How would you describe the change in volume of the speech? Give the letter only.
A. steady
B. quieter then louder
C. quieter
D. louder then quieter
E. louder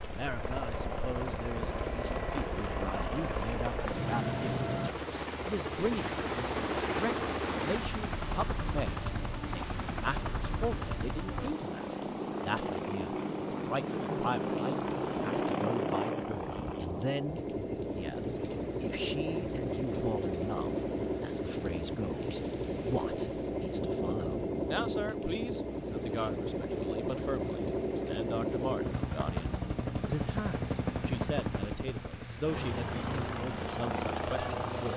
A.